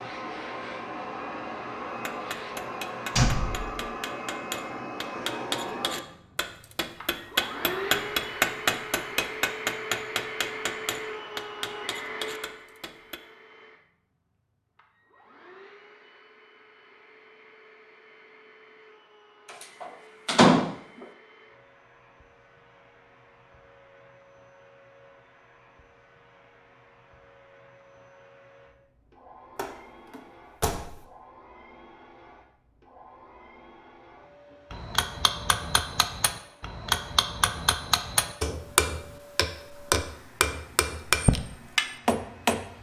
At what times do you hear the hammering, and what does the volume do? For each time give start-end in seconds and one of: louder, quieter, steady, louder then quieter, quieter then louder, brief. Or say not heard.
2.0-13.2 louder then quieter
34.7-42.7 louder.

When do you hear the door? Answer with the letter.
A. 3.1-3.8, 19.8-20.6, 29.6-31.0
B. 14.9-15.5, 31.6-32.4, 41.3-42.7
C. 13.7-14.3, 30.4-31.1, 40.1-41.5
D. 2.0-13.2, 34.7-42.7
A.